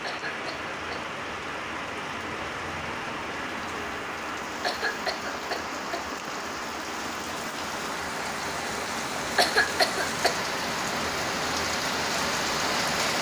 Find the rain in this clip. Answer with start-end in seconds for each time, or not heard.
0.0-13.1.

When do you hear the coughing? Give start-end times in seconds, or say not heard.
0.0-1.1, 4.6-6.2, 9.3-10.4.